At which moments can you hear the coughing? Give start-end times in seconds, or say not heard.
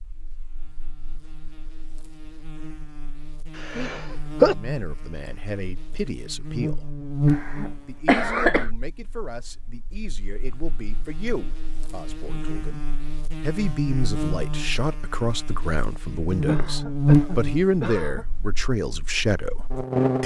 3.5-4.5, 7.3-8.7, 16.4-18.2.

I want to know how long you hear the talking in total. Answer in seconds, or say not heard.
14 s.